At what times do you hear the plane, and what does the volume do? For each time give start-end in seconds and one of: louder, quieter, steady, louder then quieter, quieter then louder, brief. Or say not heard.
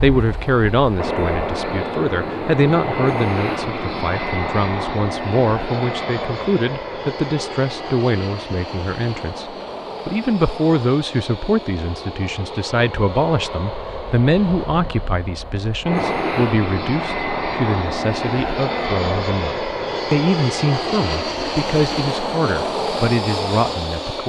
0.0-24.2 quieter then louder.